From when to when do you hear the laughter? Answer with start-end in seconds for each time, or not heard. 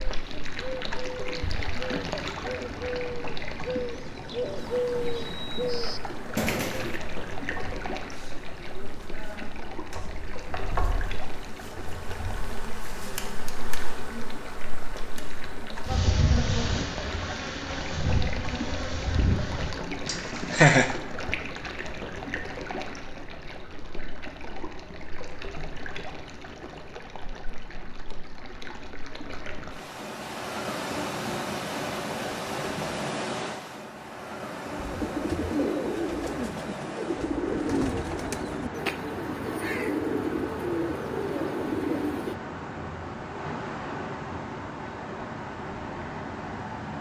20.1-20.9.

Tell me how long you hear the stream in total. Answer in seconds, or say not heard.
47 s.